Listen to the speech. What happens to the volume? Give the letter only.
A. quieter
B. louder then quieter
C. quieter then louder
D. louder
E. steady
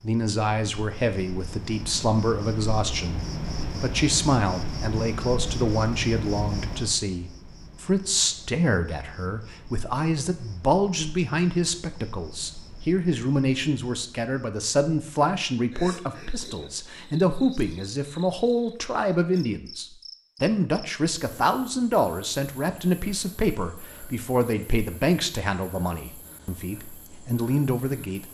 E.